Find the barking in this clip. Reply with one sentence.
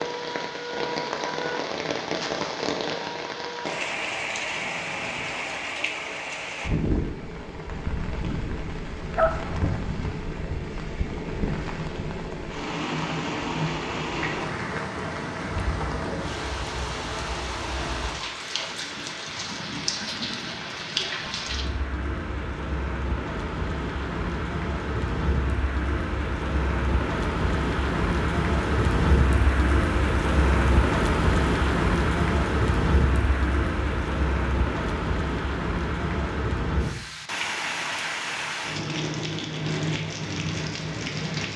The barking can be heard from 9.2 to 9.8 s.